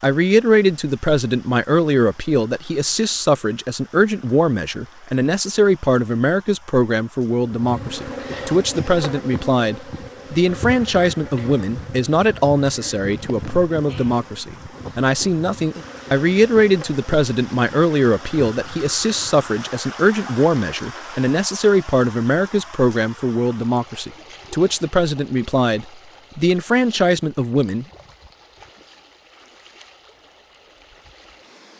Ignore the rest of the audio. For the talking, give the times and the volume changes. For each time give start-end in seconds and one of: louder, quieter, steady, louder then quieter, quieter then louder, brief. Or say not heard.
0.0-27.9 steady.